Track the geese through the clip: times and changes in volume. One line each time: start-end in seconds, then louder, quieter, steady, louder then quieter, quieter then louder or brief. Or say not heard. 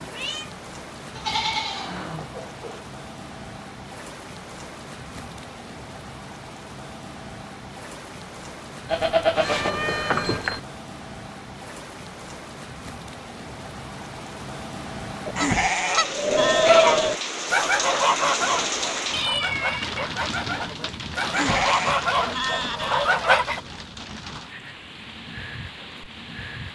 15.2-23.6 quieter then louder.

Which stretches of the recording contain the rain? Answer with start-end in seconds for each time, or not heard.
0.0-26.6.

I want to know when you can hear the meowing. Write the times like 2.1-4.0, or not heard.
0.1-0.6, 9.3-10.5, 19.0-20.1.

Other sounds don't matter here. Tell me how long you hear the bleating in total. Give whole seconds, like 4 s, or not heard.
7 s.